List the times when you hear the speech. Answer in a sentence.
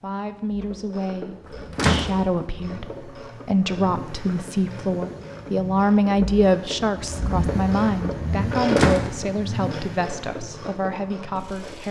The speech can be heard from 0.0 to 11.8 s.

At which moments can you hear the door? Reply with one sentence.
You can hear the door from 1.8 to 2.2 s and from 8.7 to 9.2 s.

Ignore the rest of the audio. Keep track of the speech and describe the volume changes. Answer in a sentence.
The volume of the speech goes up, then down.